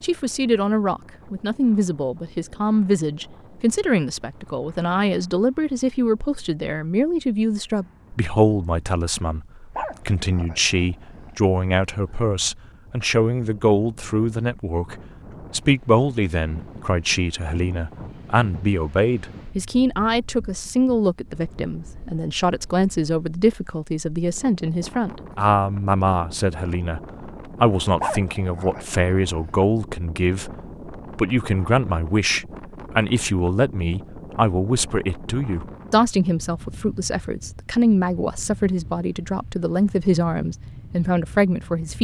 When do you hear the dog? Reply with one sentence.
You can hear the dog from 9.8 to 12.2 s and from 28.0 to 29.6 s.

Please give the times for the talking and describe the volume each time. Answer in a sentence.
The talking can be heard from 0.0 to 41.9 s, at a steady volume.